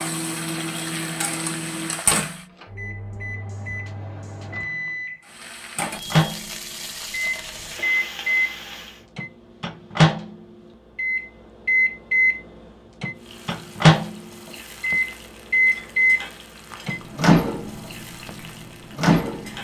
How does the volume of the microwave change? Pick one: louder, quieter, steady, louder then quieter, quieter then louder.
louder.